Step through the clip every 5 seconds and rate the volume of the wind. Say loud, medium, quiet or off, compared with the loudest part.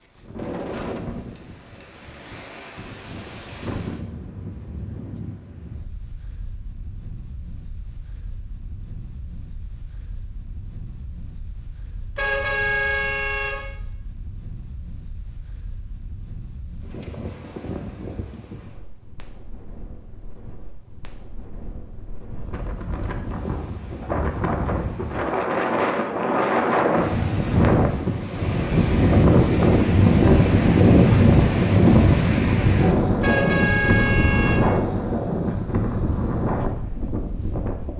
quiet, quiet, quiet, quiet, quiet, loud, loud, medium.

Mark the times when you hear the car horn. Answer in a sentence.
You can hear the car horn from 12.2 to 13.7 s and from 33.2 to 34.7 s.